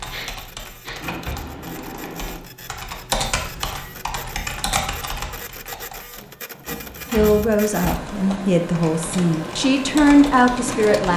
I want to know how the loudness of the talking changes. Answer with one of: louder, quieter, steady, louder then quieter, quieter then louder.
louder.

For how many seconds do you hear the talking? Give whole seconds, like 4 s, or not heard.
4 s.